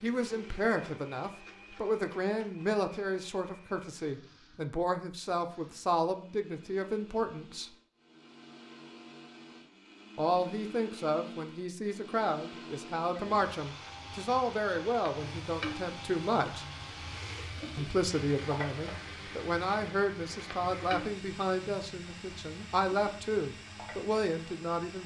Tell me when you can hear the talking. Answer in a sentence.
You can hear the talking from 0.0 to 7.7 s, from 10.2 to 16.6 s and from 17.8 to 25.0 s.